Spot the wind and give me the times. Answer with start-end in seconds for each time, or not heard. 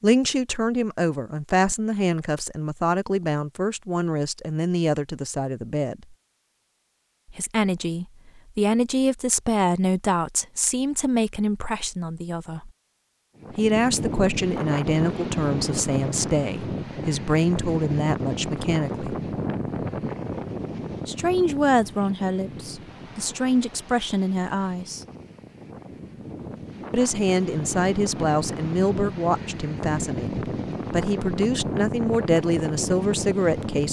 13.3-33.8.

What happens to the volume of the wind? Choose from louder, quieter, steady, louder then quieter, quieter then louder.
quieter then louder.